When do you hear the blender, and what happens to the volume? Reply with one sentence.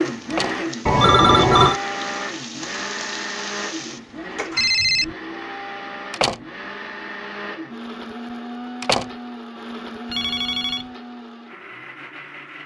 You can hear the blender from 0.0 to 12.6 s, getting quieter.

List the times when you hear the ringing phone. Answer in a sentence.
You can hear the ringing phone from 0.8 to 1.8 s, from 4.5 to 5.2 s and from 10.1 to 10.8 s.